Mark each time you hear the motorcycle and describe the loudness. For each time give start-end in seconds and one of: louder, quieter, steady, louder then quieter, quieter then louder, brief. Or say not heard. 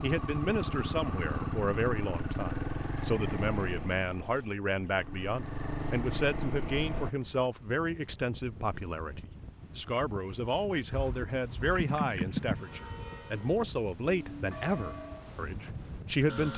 0.0-7.1 quieter then louder
10.9-12.6 brief.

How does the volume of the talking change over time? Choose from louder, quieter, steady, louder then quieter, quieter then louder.
steady.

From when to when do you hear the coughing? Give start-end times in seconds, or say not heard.
not heard.